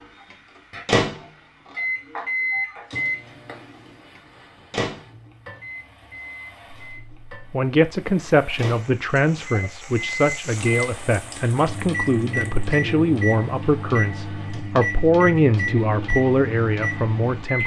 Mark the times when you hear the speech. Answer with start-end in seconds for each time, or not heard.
7.3-17.6.